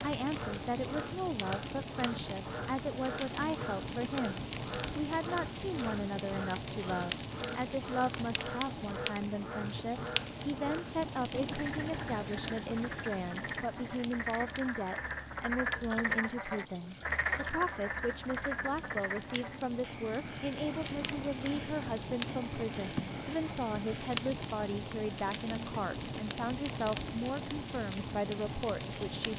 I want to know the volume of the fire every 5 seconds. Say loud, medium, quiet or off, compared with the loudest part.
loud, loud, loud, medium, loud, loud.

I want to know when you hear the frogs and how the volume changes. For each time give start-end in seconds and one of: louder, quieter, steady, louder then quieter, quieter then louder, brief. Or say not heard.
0.2-24.1 louder then quieter.